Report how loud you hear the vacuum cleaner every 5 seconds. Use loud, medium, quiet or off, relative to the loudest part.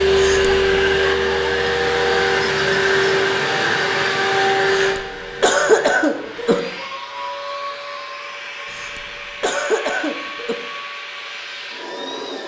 loud, quiet, quiet.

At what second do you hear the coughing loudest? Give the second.
6 s.